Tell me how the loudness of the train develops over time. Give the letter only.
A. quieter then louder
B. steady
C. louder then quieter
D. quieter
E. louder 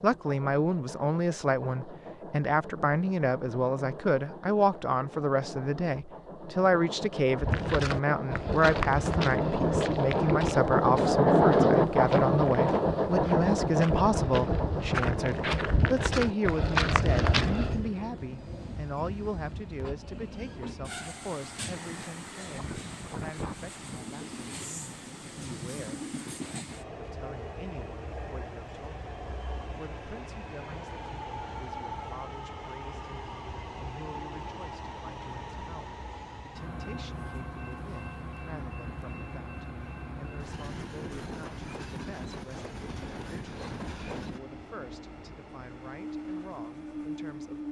C.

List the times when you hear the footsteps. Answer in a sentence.
You can hear the footsteps from 7.3 to 17.9 s.